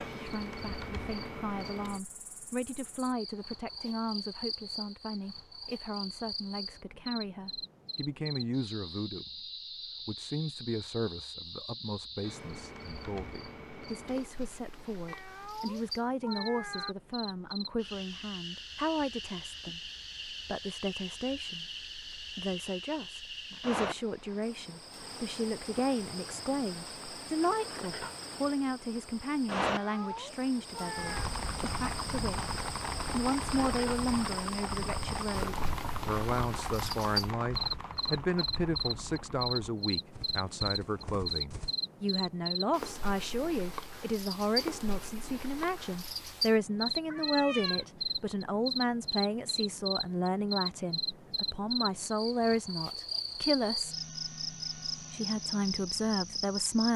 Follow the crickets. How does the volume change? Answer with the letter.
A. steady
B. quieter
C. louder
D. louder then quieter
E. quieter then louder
C.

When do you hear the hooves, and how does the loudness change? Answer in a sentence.
You can hear the hooves from 30.9 to 41.8 s, getting quieter.